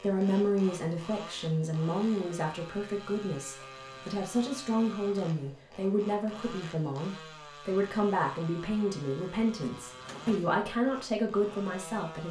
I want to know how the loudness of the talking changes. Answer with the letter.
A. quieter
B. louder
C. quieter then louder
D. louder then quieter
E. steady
E.